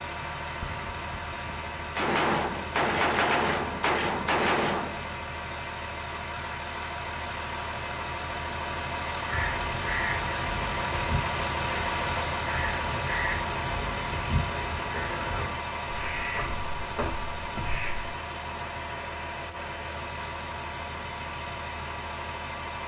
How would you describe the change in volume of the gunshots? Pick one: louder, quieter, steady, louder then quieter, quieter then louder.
louder.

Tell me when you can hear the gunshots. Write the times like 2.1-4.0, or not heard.
0.6-5.1.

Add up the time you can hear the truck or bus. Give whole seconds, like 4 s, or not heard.
23 s.